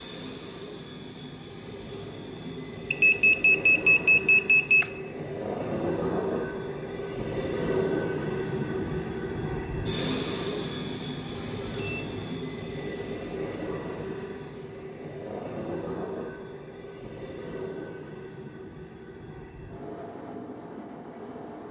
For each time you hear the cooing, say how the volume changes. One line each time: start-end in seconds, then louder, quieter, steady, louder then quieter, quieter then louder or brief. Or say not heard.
not heard.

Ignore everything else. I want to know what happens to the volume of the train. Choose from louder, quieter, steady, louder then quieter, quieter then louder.
louder then quieter.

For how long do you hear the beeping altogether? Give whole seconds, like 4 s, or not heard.
3 s.